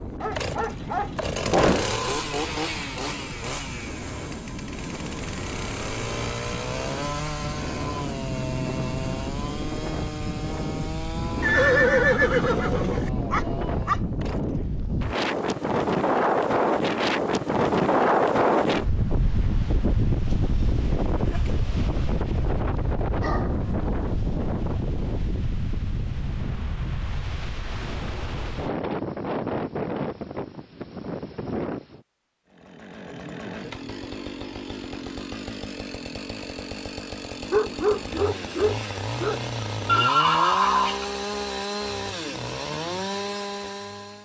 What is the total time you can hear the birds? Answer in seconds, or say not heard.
not heard.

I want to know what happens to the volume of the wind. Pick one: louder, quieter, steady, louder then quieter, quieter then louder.
louder then quieter.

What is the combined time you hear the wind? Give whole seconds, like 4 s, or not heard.
32 s.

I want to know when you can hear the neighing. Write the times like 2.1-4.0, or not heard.
11.4-13.1, 39.9-41.0.